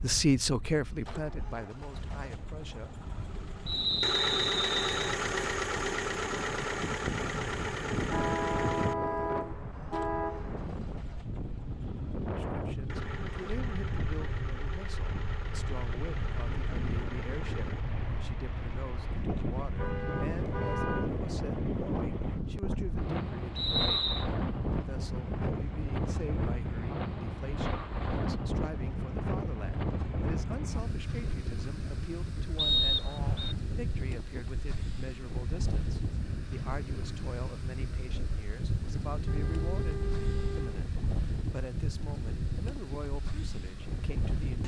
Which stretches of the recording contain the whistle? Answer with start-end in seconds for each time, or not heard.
3.6-5.2, 23.6-24.2, 32.5-33.5.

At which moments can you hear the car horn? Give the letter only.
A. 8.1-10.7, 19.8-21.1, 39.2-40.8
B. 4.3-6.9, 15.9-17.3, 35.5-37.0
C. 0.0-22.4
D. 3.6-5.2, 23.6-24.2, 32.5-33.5
A.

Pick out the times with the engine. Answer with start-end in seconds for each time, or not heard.
0.0-22.4.